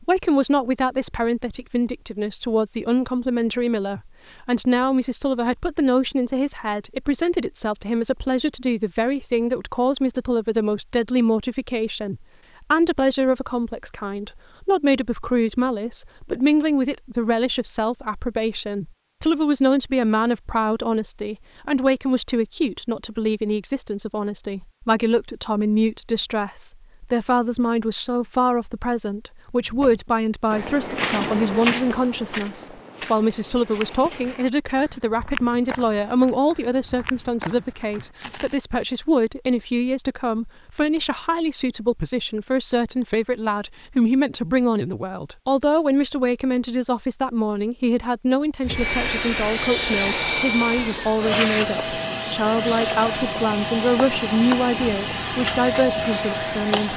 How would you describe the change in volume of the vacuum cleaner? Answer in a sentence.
The loudness of the vacuum cleaner stays about the same.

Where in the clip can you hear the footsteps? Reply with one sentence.
You can hear the footsteps from 29.6 to 38.5 s.